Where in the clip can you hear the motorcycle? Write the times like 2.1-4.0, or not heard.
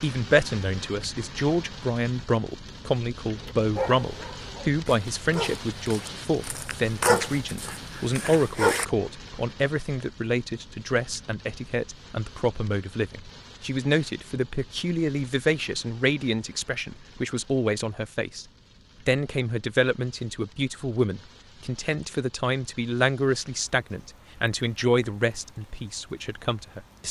not heard.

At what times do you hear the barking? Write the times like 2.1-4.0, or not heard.
3.5-8.8.